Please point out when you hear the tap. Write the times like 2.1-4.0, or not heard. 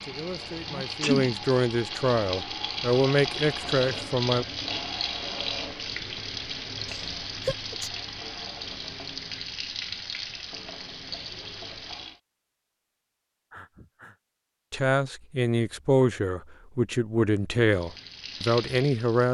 0.0-12.2, 17.6-19.2.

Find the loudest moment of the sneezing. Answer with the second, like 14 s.
1 s.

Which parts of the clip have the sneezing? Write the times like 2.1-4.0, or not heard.
0.7-1.4, 6.8-7.9, 13.5-14.2.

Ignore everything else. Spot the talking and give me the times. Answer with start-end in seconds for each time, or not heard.
0.0-4.5, 14.7-19.2.